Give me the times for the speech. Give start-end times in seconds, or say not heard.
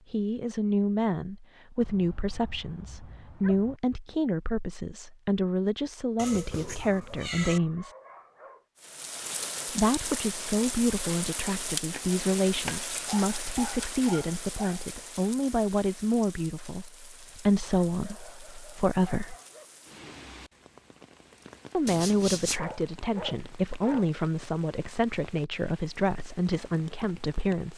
0.1-8.0, 9.7-19.4, 21.7-27.7.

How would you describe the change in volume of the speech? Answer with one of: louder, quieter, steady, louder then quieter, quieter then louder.
steady.